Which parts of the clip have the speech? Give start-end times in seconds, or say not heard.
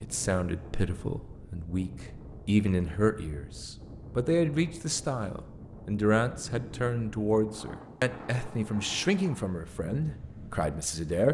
0.0-11.3.